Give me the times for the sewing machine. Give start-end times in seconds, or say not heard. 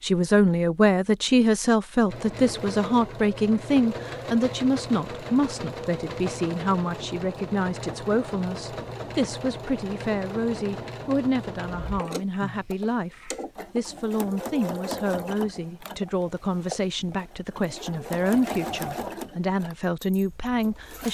2.0-21.0.